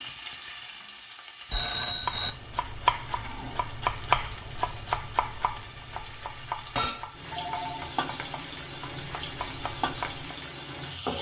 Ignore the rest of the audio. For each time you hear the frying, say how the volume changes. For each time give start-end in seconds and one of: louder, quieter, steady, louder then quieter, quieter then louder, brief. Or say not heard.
0.0-11.1 louder.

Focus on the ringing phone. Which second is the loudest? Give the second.
2 s.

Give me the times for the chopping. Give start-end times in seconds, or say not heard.
1.9-10.3.